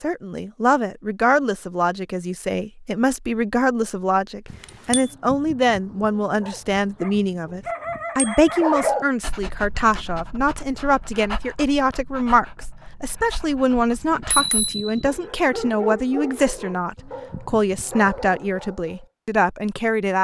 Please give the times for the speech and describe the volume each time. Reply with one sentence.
You can hear the speech from 0.0 to 20.1 s, at a steady volume.